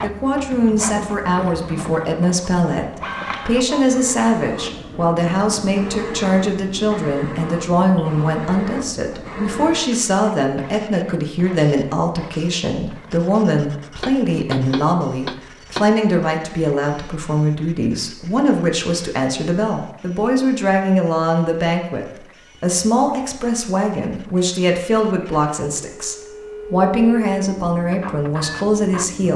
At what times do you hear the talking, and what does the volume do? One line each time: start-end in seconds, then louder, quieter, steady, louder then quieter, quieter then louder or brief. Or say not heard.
0.0-29.3 steady.